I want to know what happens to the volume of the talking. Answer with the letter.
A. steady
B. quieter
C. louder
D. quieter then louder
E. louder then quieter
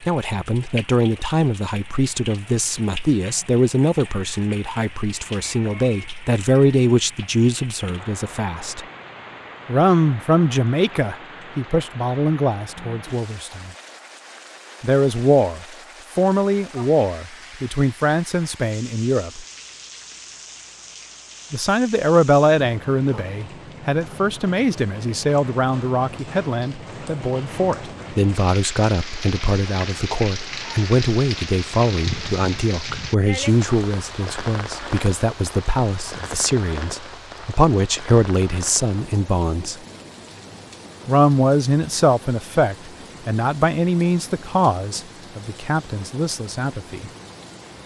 A.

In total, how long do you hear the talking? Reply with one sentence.
The talking can be heard for 42 seconds in total.